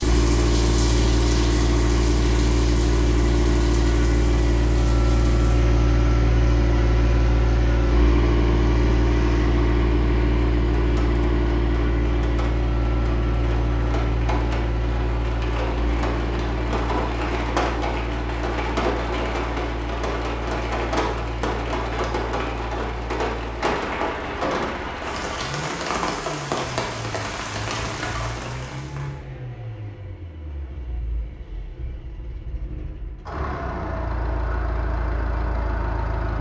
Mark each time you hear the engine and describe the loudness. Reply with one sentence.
The engine can be heard from 0.0 to 36.3 s, getting quieter.